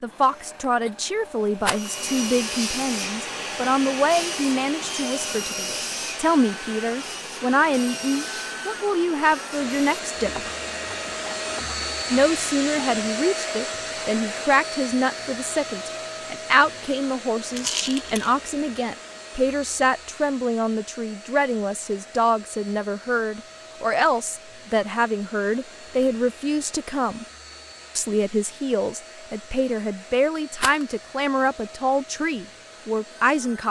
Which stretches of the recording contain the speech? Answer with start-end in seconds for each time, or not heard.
0.0-10.5, 12.1-27.2, 27.9-33.6.